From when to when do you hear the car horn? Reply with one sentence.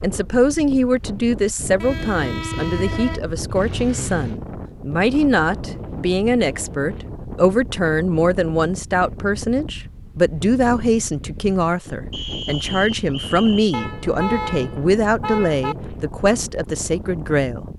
You can hear the car horn from 1.8 to 3.2 s and from 13.7 to 15.8 s.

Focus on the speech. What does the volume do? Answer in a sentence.
The loudness of the speech stays about the same.